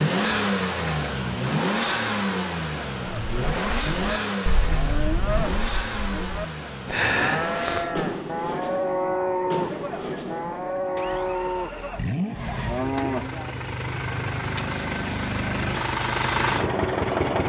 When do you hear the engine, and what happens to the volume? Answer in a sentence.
You can hear the engine from 0.0 to 17.4 s, getting quieter then louder.